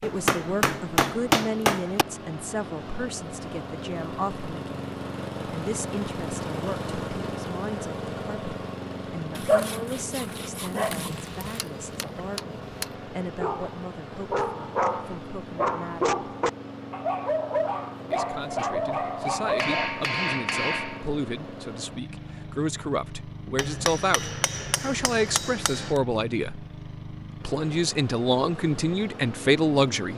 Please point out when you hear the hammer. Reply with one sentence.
You can hear the hammer from 0.0 to 2.0 s, from 10.9 to 12.9 s, from 19.6 to 21.1 s and from 23.6 to 26.0 s.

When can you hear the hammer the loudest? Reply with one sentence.
The loudest moment of the hammer is at 1 second.